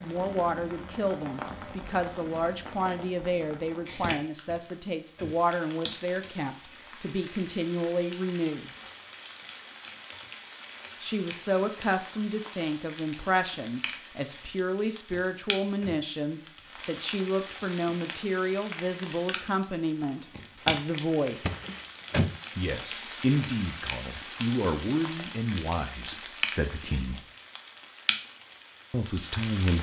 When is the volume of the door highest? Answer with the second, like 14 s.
22 s.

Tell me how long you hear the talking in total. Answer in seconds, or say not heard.
25 s.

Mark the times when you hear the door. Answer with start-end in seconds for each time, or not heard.
4.5-5.4, 15.1-16.1, 21.4-22.4.